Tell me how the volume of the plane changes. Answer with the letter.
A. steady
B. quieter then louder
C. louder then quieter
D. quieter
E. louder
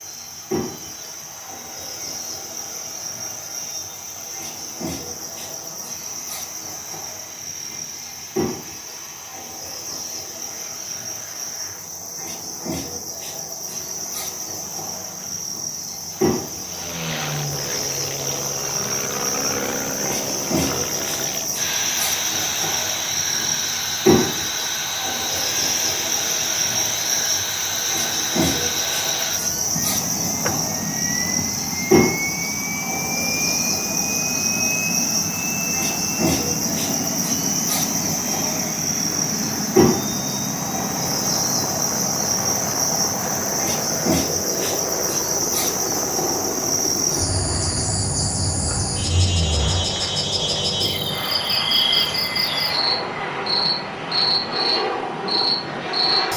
E.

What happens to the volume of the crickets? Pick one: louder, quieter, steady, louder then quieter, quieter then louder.
louder.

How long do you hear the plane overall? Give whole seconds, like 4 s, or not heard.
56 s.